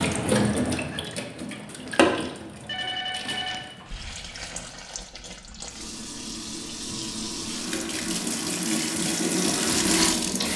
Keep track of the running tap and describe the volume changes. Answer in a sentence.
The volume of the running tap goes down, then up.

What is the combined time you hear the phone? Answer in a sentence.
The phone can be heard for 2 seconds in total.